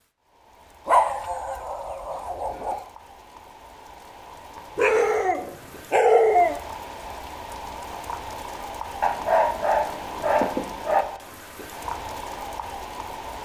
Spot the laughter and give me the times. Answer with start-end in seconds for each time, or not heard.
not heard.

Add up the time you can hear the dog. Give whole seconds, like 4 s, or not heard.
6 s.